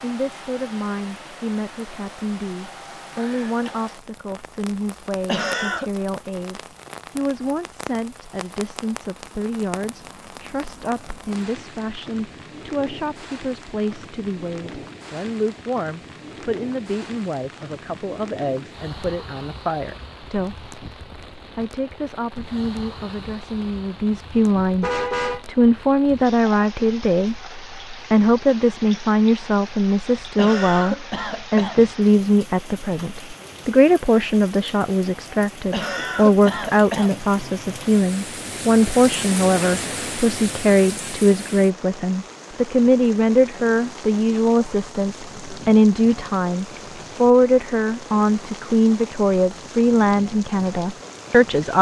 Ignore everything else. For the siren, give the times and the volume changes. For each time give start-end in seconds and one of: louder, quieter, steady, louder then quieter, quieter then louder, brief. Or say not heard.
not heard.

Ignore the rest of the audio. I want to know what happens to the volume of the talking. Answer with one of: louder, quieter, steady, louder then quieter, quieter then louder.
louder.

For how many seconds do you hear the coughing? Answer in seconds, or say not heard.
4 s.